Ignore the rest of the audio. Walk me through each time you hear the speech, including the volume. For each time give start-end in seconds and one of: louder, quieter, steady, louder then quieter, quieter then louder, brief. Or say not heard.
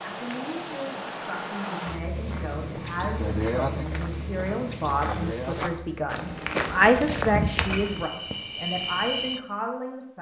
0.0-10.1 louder then quieter.